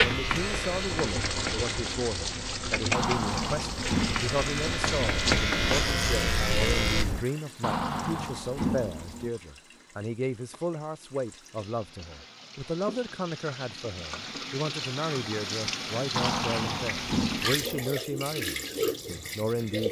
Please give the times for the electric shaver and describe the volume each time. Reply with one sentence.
You can hear the electric shaver from 0.0 to 7.2 s, getting quieter then louder.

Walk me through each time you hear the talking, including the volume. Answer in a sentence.
The talking can be heard from 0.0 to 19.8 s, at a steady volume.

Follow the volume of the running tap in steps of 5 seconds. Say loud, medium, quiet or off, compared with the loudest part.
loud, medium, medium, loud.